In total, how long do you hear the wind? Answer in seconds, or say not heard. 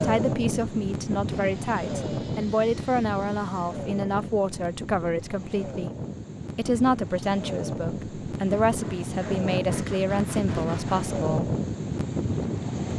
13 s.